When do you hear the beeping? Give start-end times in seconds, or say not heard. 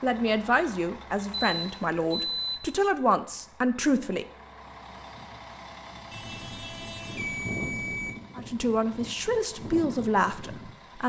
1.3-2.6, 6.1-8.2.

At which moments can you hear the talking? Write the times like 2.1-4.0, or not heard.
0.0-4.2, 8.3-11.0.